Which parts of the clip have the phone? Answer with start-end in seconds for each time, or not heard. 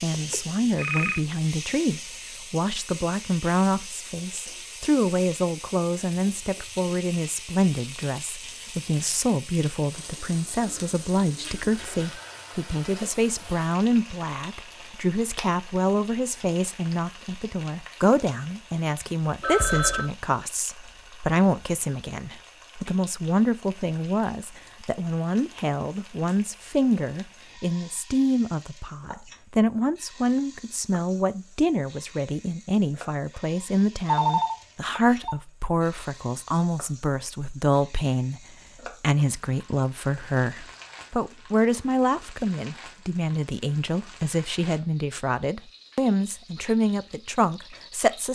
0.1-1.2, 19.4-20.1, 34.0-35.4.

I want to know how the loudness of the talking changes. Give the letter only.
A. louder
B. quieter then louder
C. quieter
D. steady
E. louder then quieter
D.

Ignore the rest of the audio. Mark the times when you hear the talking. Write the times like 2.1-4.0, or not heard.
0.0-48.2.